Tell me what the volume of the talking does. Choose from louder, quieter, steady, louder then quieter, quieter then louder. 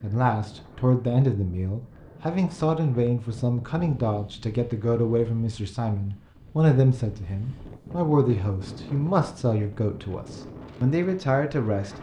steady.